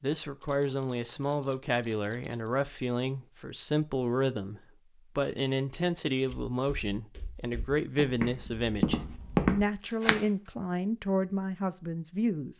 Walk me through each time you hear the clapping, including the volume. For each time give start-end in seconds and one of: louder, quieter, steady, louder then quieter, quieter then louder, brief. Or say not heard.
not heard.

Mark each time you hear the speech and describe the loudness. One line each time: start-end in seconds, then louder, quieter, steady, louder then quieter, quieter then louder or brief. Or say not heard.
0.0-12.5 steady.